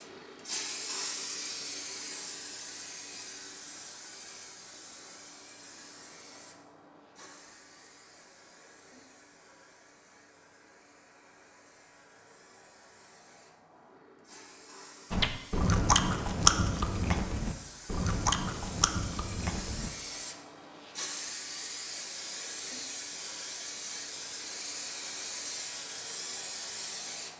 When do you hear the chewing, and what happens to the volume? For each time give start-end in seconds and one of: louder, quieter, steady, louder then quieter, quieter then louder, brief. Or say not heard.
15.1-19.9 quieter.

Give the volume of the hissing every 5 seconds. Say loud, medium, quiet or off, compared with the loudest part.
loud, quiet, quiet, medium, loud, loud.